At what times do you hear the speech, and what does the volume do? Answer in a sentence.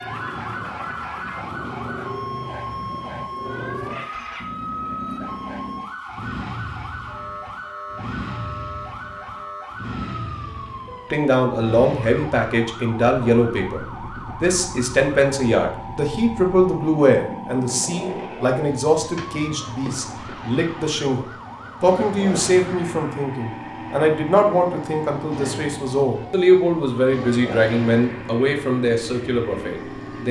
You can hear the speech from 11.1 to 30.2 s, at a steady volume.